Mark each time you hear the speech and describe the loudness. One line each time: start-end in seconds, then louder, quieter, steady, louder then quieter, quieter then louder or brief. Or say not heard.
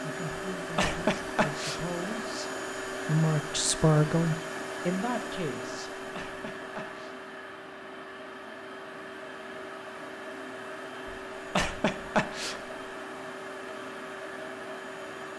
0.0-6.0 louder then quieter.